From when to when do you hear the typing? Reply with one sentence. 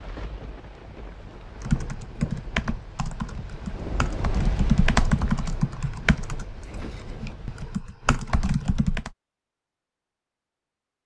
The typing can be heard from 1.6 to 9.1 s.